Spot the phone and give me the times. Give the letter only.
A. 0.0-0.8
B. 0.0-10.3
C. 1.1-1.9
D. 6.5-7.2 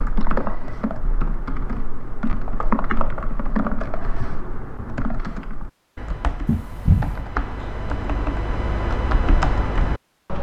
D.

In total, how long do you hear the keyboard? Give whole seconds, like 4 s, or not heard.
10 s.